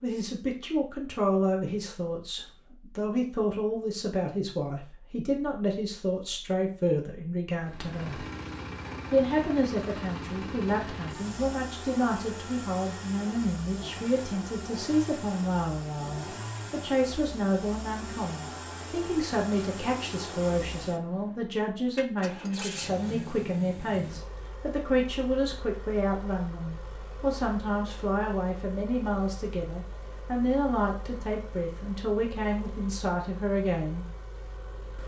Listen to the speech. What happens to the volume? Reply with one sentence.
The loudness of the speech stays about the same.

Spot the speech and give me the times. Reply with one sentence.
You can hear the speech from 0.0 to 8.2 s and from 9.1 to 34.0 s.